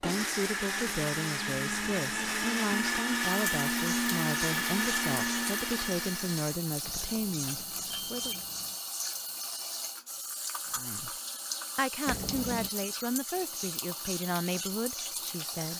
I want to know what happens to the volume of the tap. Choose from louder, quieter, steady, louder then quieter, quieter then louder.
steady.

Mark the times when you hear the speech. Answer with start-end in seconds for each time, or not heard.
0.0-8.4, 10.7-11.1, 11.8-15.7.